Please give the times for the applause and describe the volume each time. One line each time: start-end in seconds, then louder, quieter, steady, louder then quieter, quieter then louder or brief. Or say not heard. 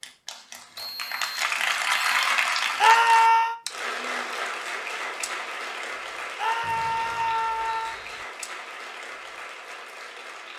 0.0-10.5 quieter.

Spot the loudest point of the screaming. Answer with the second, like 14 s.
3 s.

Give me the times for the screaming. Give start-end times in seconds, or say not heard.
2.8-3.5, 6.3-8.0.